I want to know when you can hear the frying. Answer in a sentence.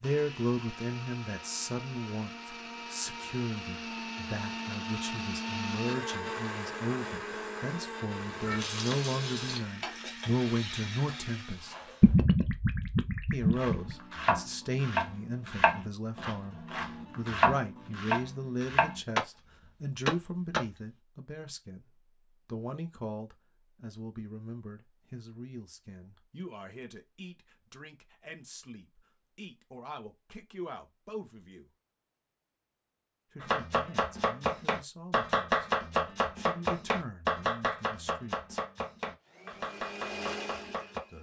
You can hear the frying from 8.2 to 12.1 s.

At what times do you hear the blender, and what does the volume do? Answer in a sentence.
The blender can be heard from 0.0 to 12.2 s, getting louder then quieter; and briefly from 39.2 to 41.1 s.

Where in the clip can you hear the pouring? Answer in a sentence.
The pouring can be heard from 12.0 to 13.9 s.